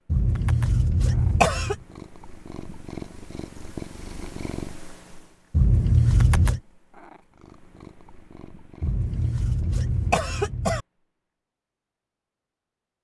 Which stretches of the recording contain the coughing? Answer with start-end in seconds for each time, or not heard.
0.1-1.8, 5.5-6.6, 8.8-10.8.